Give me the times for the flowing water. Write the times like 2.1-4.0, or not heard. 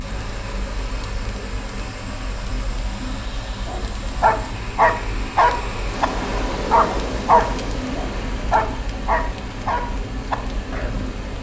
0.0-11.3.